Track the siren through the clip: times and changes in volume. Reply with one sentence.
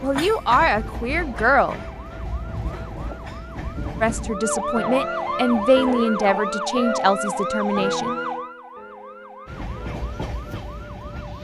The siren can be heard from 0.0 to 11.3 s, getting louder then quieter.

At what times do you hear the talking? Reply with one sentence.
You can hear the talking from 0.0 to 1.8 s and from 4.0 to 8.2 s.